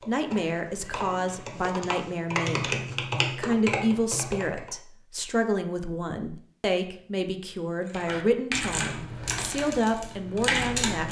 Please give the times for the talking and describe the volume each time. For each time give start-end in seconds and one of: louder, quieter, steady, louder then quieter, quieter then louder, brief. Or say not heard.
0.1-11.0 steady.